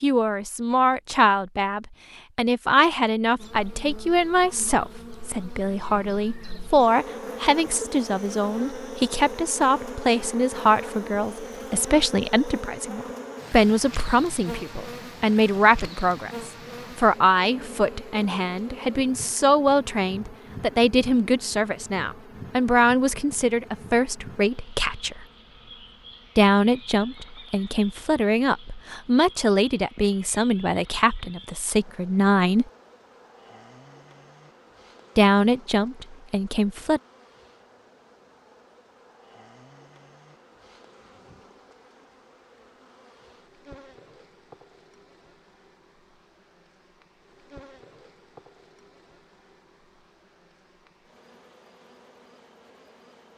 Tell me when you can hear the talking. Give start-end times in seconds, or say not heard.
0.0-25.2, 26.4-32.6, 35.1-37.0.